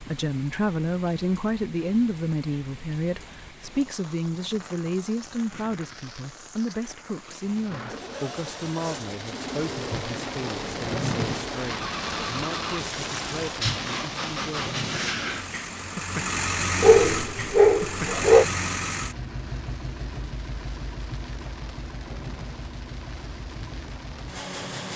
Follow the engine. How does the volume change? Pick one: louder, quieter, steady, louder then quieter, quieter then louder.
louder then quieter.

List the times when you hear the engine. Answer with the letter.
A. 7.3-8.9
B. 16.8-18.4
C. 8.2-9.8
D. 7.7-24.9
D.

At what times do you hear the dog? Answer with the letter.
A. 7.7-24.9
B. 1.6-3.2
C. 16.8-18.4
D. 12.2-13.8
C.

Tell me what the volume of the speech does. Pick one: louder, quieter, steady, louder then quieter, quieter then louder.
quieter.